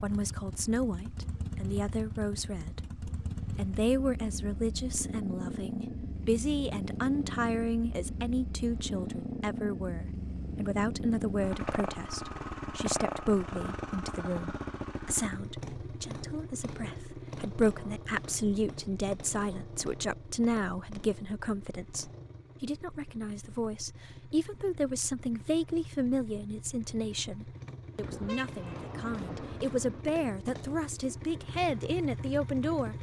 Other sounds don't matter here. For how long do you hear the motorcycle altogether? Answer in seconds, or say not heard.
33 s.